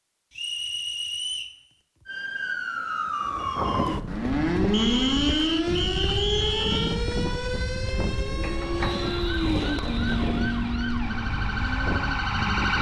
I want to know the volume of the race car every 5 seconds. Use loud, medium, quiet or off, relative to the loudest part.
off, loud, loud.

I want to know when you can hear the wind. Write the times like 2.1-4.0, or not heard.
3.2-12.7.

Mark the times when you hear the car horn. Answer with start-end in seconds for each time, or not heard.
not heard.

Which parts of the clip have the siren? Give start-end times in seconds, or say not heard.
2.0-12.7.